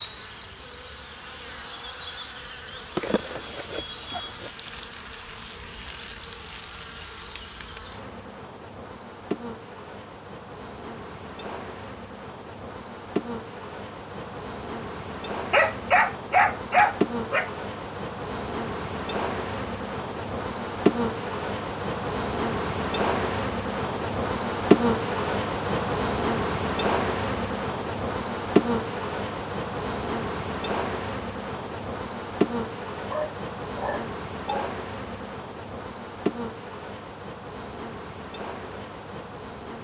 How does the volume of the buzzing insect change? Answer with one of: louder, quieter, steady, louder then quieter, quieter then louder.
louder then quieter.